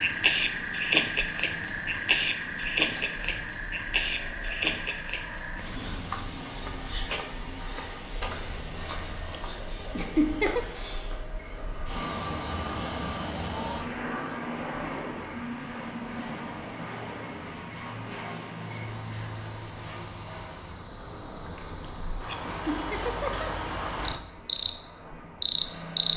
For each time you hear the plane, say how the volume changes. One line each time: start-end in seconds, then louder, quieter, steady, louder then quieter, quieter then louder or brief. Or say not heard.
0.2-26.1 louder then quieter.